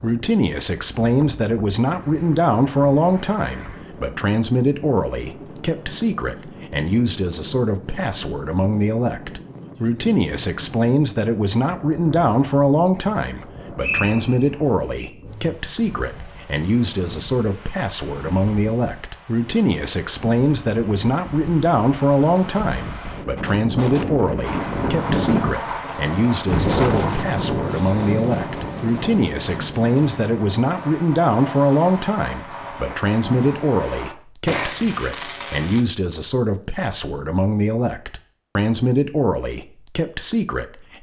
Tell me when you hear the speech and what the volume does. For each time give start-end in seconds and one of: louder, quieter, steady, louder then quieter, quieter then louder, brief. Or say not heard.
0.0-40.9 steady.